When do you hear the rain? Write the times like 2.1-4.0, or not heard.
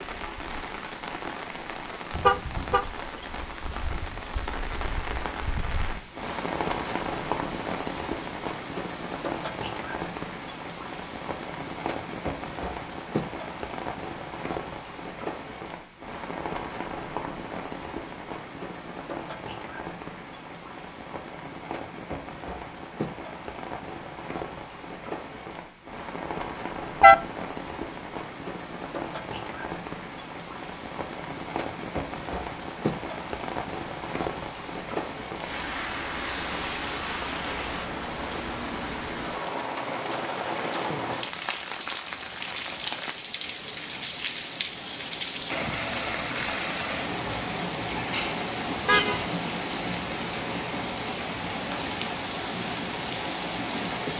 0.0-54.1.